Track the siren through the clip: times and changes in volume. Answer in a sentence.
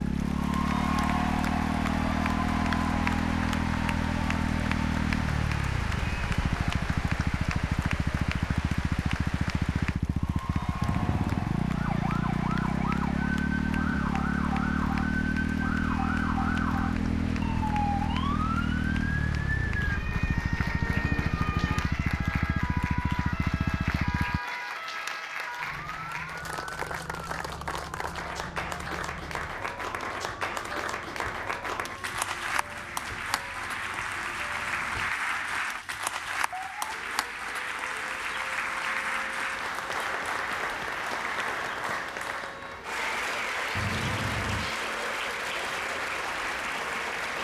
The siren can be heard from 11.8 to 47.3 s, getting quieter.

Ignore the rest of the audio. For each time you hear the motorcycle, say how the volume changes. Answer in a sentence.
You can hear the motorcycle from 0.0 to 24.4 s, at a steady volume.